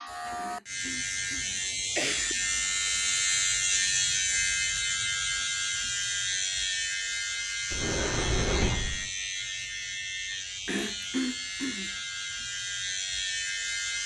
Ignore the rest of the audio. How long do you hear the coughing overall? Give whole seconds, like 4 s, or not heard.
3 s.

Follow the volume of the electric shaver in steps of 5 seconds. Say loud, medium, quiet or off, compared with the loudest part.
loud, loud, medium.